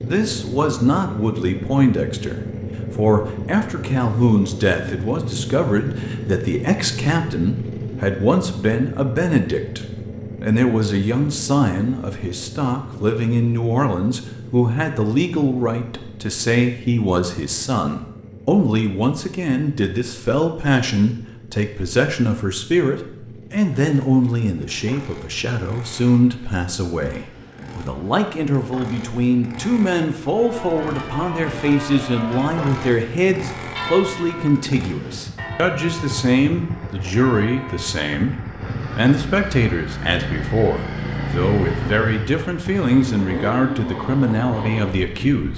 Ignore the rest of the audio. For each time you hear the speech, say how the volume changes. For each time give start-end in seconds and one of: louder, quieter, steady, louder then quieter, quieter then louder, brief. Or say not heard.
0.0-45.5 steady.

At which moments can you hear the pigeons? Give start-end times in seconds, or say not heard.
not heard.